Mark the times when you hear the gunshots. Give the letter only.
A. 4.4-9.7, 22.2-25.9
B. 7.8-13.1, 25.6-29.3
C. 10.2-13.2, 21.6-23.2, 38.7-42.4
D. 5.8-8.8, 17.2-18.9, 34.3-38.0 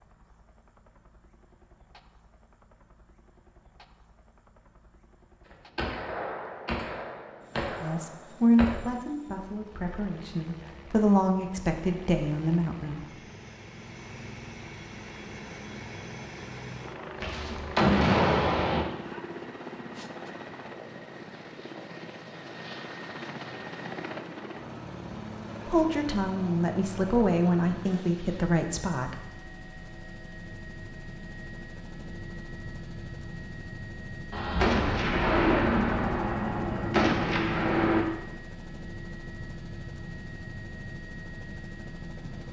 D.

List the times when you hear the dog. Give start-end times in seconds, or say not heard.
not heard.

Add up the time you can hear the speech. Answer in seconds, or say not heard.
9 s.